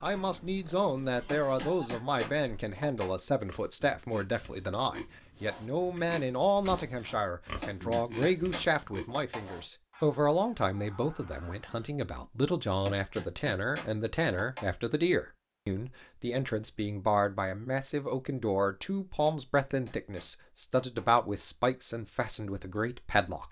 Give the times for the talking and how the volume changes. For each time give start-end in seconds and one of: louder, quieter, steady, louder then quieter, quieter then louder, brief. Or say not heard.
0.0-23.4 steady.